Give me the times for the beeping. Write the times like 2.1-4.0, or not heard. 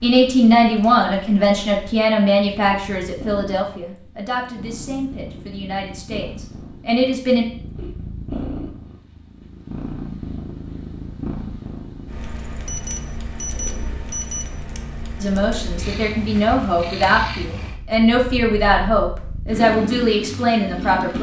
12.7-14.6.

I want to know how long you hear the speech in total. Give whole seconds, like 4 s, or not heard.
13 s.